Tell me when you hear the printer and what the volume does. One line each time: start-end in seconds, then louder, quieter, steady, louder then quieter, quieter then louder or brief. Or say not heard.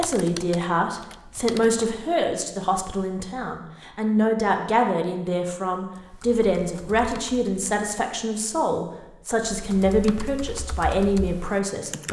not heard.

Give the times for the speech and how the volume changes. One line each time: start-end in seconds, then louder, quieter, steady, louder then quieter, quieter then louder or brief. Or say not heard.
0.0-12.0 steady.